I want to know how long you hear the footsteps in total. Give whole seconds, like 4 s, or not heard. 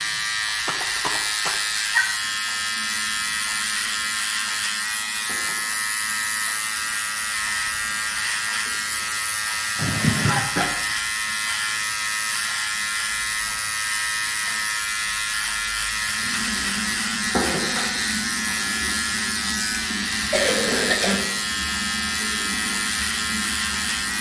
not heard.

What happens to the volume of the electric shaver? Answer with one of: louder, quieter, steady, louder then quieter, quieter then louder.
steady.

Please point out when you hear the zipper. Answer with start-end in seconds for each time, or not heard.
not heard.